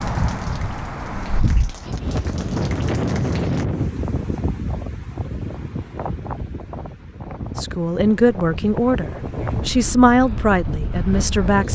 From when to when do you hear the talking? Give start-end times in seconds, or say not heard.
7.5-11.7.